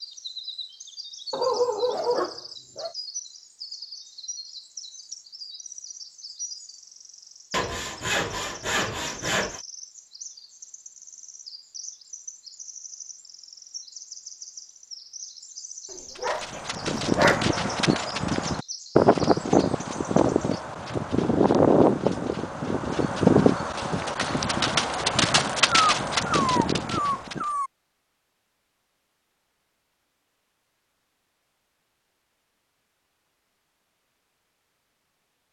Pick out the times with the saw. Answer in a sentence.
The saw can be heard from 7.5 to 9.6 s.